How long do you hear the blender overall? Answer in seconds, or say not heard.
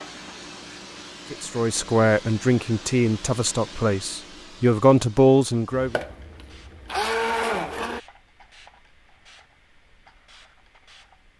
2 s.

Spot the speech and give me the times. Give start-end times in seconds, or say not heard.
1.3-6.0.